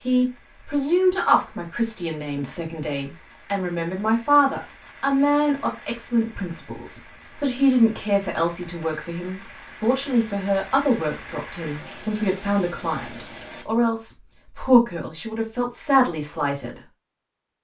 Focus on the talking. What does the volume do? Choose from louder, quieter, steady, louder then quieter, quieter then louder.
steady.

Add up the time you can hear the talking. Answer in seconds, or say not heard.
17 s.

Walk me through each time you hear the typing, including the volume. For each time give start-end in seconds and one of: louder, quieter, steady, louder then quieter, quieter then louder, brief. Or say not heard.
not heard.